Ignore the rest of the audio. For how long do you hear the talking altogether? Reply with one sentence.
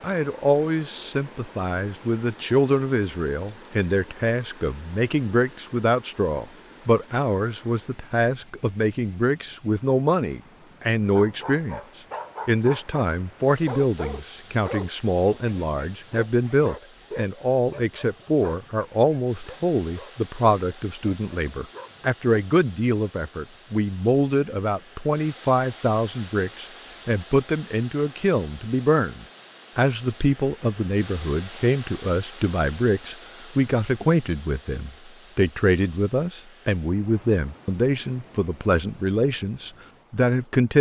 You can hear the talking for 40 seconds altogether.